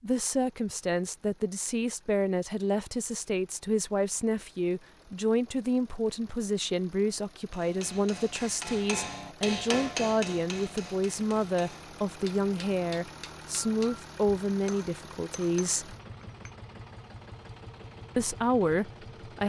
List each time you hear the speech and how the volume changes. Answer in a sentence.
The speech can be heard from 0.0 to 15.9 s, at a steady volume; and briefly from 18.1 to 19.4 s.